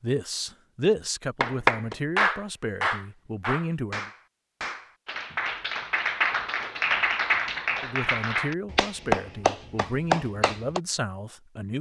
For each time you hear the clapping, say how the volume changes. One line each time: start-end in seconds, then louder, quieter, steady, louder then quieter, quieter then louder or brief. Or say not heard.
1.4-10.8 quieter then louder.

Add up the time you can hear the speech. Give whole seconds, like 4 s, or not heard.
8 s.